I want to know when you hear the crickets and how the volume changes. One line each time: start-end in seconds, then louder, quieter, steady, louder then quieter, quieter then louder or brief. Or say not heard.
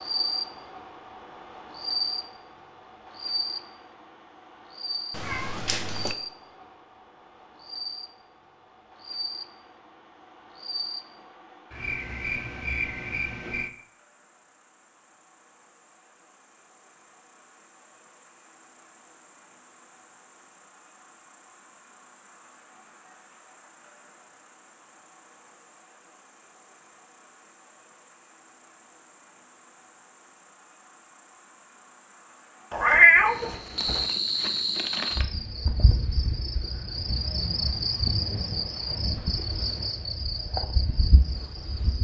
0.0-42.0 quieter then louder.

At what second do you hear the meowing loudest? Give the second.
33 s.